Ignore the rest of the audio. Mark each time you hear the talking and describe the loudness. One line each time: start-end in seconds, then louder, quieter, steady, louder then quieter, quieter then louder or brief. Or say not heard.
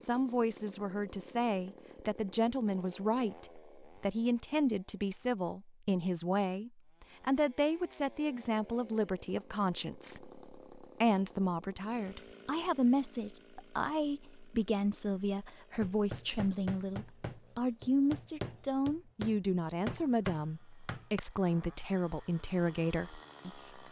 0.0-23.8 steady.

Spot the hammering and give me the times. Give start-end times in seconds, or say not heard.
15.8-21.2.